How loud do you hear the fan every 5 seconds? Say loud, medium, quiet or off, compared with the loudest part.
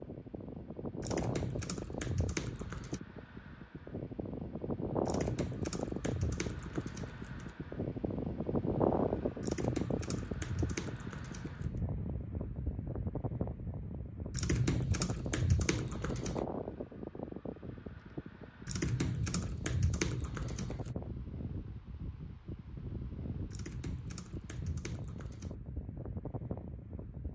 medium, loud, medium, medium, medium, medium.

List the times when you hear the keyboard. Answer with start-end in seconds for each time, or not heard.
1.0-3.0, 5.0-7.5, 9.4-11.8, 14.3-16.4, 18.6-20.9, 23.5-25.6.